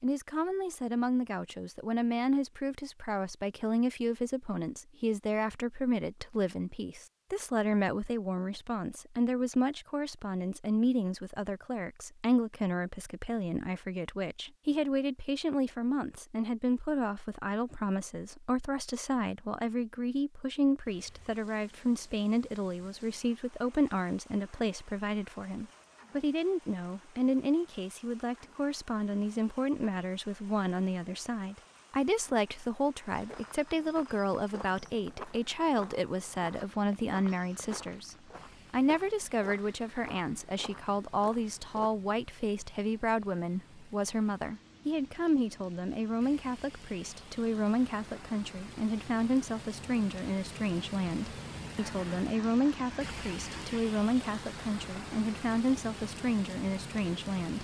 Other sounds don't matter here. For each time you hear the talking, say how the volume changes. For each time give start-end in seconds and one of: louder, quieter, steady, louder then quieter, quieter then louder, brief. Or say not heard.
0.0-57.5 steady.